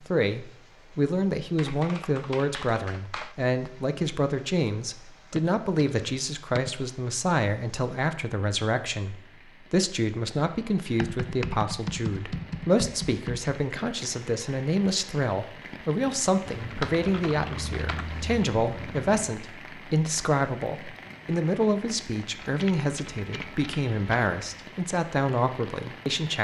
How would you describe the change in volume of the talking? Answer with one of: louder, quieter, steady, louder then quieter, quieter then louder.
steady.